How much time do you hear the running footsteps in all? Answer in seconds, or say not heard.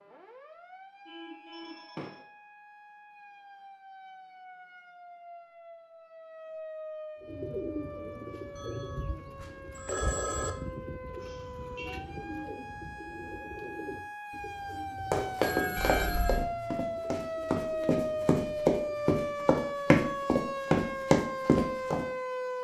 7 s.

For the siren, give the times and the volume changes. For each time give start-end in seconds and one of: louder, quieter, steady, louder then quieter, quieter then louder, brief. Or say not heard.
0.0-22.5 louder.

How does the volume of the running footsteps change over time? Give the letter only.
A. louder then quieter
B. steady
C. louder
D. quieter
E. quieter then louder
C.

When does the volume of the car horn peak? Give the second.
16 s.